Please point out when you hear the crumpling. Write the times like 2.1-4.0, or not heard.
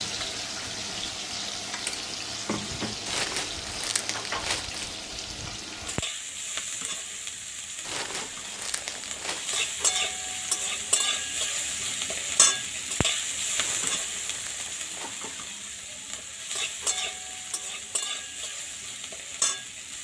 3.0-5.0, 7.8-9.8, 13.6-15.4.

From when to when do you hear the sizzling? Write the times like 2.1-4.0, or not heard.
0.0-19.9.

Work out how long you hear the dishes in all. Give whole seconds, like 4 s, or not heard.
not heard.